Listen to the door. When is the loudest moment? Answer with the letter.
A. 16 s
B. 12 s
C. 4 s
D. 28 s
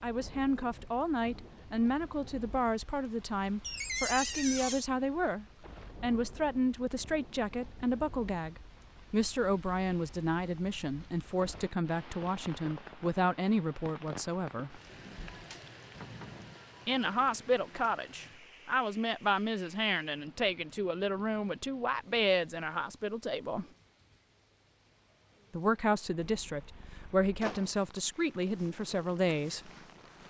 C.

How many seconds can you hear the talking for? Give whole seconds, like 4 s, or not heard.
26 s.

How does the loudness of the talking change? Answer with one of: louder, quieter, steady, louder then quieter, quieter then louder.
steady.